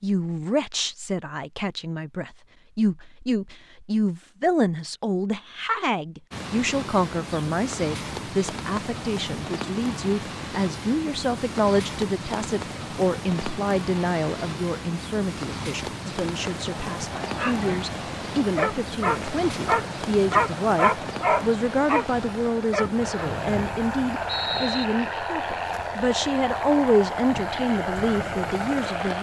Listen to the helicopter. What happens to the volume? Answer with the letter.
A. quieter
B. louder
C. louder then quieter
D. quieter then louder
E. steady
B.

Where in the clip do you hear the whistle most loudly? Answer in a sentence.
The loudest moment of the whistle is at 24 seconds.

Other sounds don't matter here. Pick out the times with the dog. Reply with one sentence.
The dog can be heard from 17.2 to 23.3 s.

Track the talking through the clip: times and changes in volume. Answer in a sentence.
The talking can be heard from 0.0 to 29.1 s, at a steady volume.